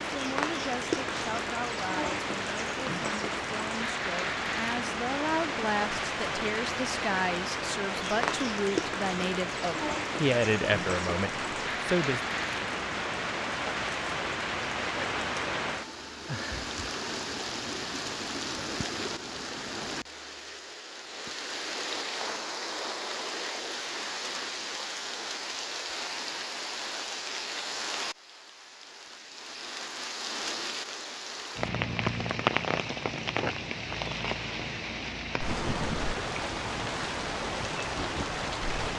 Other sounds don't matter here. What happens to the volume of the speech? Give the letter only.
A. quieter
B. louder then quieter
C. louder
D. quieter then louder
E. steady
C.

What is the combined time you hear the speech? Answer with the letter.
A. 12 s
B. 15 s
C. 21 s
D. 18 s
A.